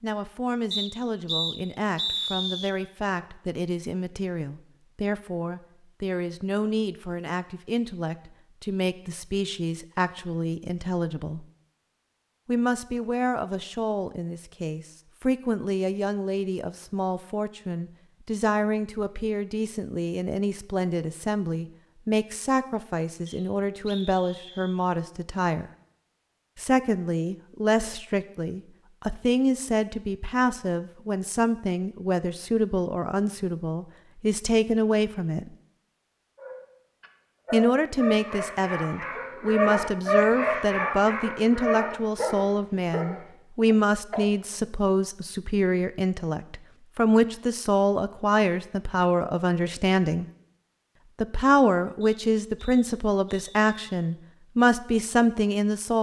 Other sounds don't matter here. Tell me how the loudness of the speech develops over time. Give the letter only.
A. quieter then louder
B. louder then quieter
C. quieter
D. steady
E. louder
E.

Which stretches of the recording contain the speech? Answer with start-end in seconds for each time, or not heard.
0.0-11.4, 12.4-25.7, 26.6-35.5, 37.5-50.2, 51.2-55.9.